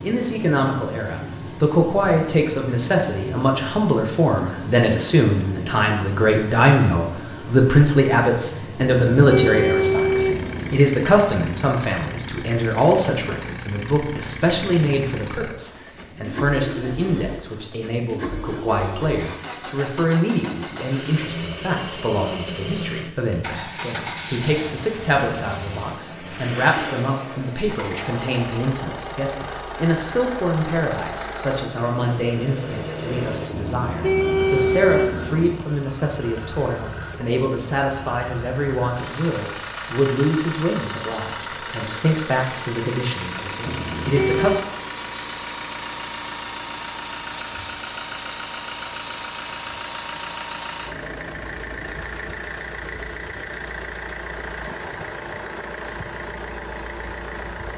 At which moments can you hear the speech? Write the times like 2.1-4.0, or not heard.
0.0-44.5.